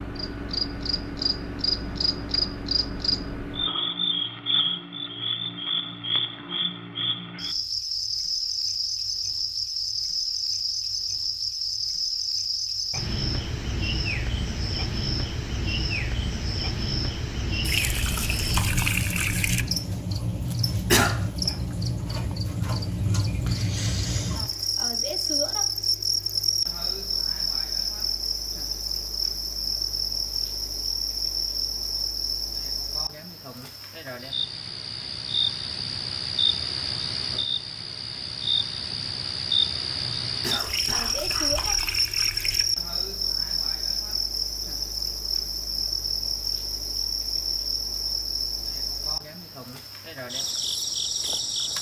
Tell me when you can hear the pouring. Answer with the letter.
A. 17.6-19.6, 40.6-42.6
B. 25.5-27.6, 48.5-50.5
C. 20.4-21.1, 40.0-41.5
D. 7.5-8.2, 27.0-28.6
A.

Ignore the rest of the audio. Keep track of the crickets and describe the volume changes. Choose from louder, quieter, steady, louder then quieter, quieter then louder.
steady.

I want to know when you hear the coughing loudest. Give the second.
21 s.